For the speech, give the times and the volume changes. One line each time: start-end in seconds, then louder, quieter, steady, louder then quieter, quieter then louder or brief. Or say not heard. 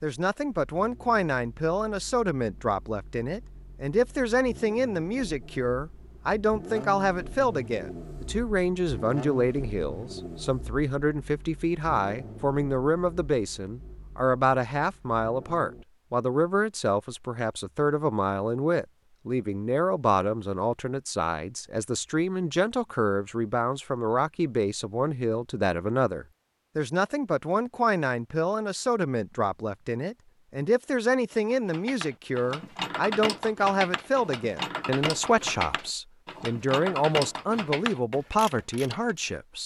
0.0-39.6 steady.